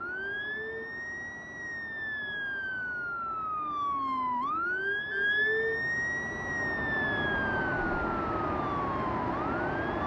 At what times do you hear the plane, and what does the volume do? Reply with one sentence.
You can hear the plane from 0.0 to 10.0 s, getting louder.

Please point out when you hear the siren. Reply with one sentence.
You can hear the siren from 0.0 to 10.0 s.